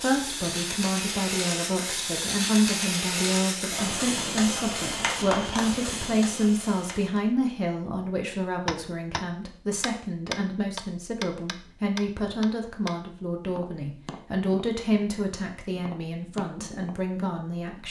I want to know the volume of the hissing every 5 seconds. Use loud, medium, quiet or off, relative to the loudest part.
loud, loud, off, off.